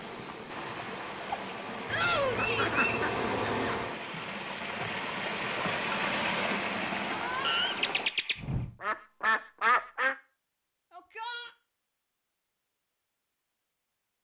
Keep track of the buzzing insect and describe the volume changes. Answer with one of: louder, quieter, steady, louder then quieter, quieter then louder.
louder.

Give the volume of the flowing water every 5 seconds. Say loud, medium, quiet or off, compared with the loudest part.
medium, loud, off.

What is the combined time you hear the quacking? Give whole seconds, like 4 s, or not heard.
5 s.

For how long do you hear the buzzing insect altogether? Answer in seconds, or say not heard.
4 s.